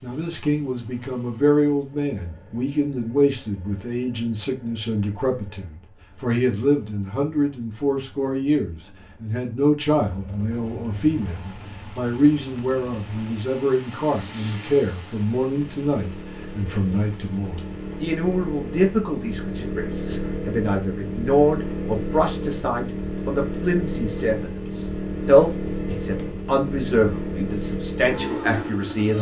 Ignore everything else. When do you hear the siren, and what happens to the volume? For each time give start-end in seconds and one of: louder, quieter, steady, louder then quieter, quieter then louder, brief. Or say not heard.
not heard.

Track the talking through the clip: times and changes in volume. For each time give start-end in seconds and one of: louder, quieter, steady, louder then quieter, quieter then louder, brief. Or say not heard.
0.0-29.1 steady.